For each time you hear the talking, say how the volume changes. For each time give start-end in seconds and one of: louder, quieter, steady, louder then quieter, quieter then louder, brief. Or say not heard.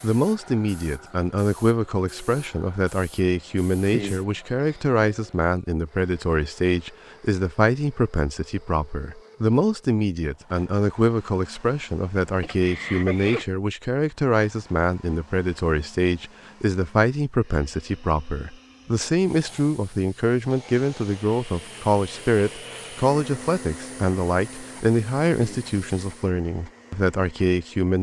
0.0-27.9 steady.